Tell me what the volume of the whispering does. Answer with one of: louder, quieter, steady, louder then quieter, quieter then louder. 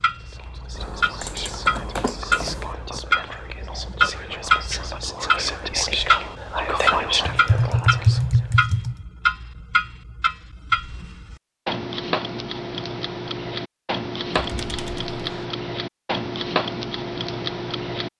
louder.